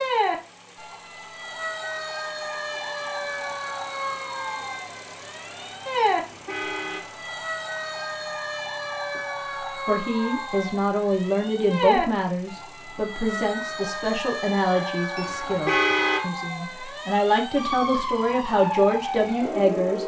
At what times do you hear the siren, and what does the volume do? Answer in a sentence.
The siren can be heard from 0.0 to 20.0 s, at a steady volume.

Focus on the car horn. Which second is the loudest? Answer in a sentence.
The loudest moment of the car horn is at 16 seconds.